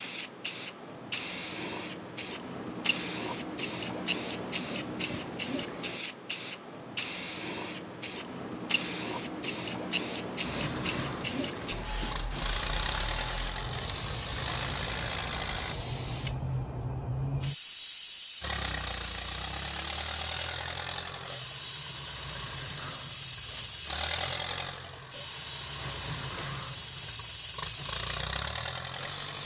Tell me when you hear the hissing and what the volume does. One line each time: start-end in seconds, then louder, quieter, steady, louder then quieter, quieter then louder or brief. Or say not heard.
0.0-29.4 steady.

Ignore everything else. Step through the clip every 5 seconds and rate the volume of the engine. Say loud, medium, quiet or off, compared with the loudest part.
off, off, loud, loud, loud, loud.